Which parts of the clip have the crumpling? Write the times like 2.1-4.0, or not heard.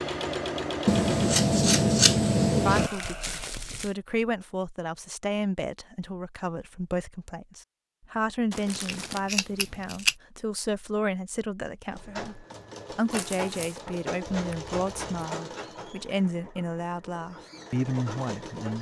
2.8-4.0, 8.5-9.2, 13.1-13.8.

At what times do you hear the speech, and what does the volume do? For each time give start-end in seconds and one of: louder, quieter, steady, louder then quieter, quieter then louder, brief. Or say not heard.
2.6-18.7 steady.